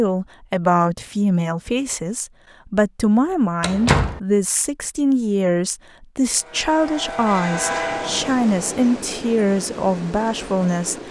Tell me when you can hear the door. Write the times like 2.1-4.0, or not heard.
3.6-4.2.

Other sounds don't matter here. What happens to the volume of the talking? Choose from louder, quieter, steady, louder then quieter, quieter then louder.
steady.